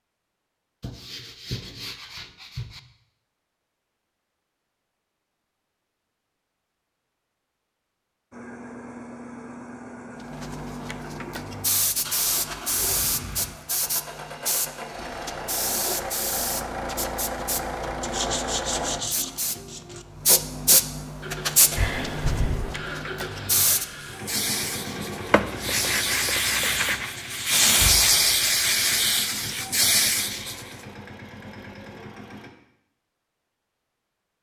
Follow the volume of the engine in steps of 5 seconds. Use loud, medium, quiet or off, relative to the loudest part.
off, medium, medium, loud, medium, medium, medium.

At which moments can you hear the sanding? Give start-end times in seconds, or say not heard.
0.8-2.8, 18.0-20.1, 25.3-27.1.